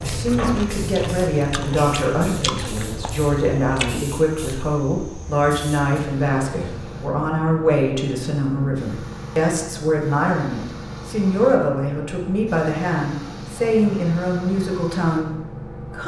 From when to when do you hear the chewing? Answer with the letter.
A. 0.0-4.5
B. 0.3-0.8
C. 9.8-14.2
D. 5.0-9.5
A.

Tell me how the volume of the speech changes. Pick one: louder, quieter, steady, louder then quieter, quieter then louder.
steady.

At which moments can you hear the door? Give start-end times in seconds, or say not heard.
0.3-0.8.